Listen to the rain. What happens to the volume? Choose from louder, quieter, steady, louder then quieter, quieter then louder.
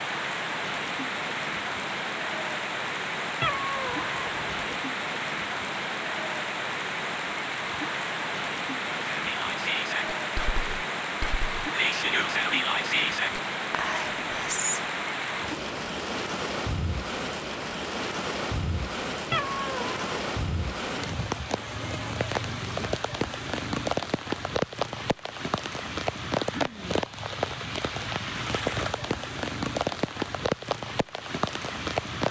steady.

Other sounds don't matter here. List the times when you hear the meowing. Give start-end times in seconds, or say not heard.
3.4-4.7, 19.3-20.1.